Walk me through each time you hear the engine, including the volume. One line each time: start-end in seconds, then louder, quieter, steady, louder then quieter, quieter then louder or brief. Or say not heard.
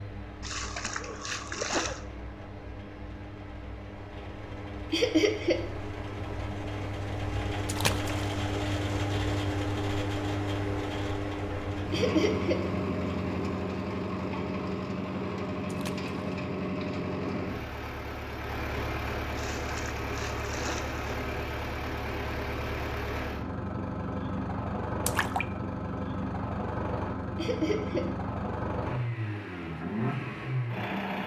0.0-31.2 louder.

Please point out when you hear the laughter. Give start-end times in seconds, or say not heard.
4.9-5.6, 11.9-12.6, 27.4-28.1.